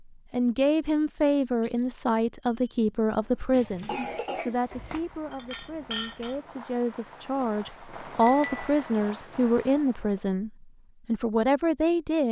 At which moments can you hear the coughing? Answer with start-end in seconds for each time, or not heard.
3.5-5.0.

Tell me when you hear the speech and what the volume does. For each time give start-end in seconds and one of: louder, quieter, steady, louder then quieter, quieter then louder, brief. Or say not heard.
0.3-12.2 quieter then louder.